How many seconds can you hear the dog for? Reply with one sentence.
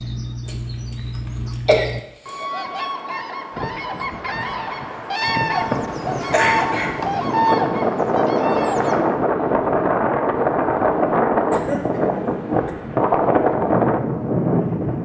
You can't hear the dog here.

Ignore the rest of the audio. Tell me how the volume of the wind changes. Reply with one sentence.
The loudness of the wind goes up.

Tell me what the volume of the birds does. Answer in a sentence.
The loudness of the birds goes up.